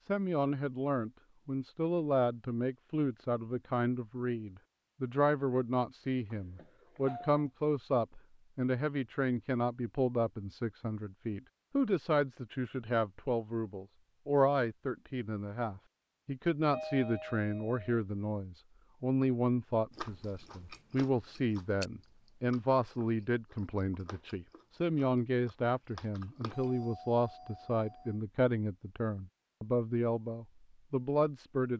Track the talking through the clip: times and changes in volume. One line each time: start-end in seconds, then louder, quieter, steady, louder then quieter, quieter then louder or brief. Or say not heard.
0.1-31.7 steady.